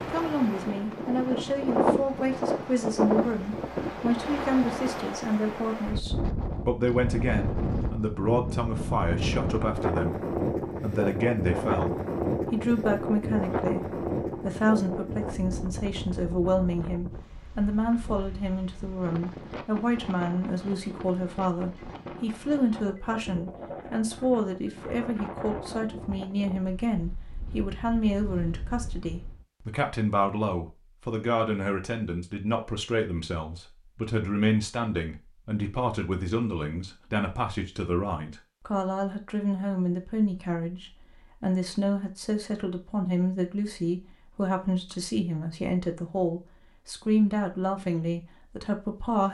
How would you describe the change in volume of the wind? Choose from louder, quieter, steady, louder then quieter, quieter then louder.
quieter.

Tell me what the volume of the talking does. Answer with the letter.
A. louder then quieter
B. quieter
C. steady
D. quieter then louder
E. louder
C.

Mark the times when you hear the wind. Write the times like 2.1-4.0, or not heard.
0.0-29.4.